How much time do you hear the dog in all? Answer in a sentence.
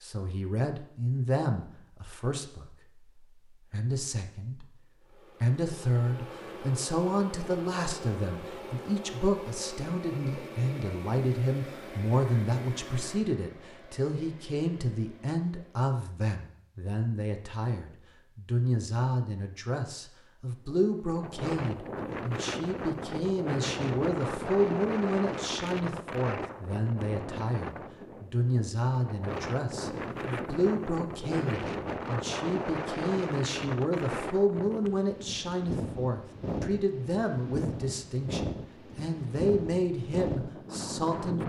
The dog can't be heard in this clip.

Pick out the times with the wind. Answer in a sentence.
The wind can be heard from 20.6 to 41.4 s.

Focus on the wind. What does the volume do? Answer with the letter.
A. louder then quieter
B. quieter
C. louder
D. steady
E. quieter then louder
D.